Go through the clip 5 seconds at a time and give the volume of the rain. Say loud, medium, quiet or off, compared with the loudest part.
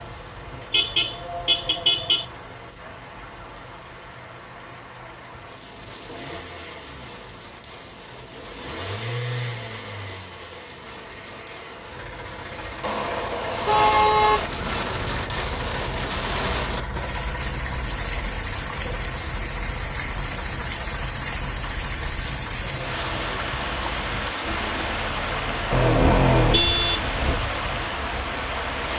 quiet, quiet, medium, loud, loud, loud.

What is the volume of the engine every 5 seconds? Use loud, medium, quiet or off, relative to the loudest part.
medium, loud, loud, loud, loud, loud.